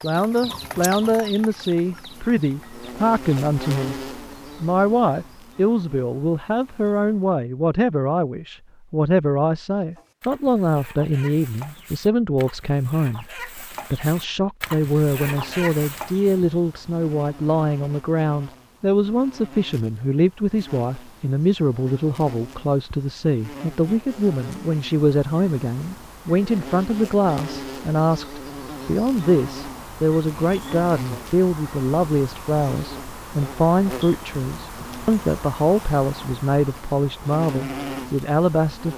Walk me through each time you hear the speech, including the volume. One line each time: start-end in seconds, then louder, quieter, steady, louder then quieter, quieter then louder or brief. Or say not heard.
0.0-38.9 steady.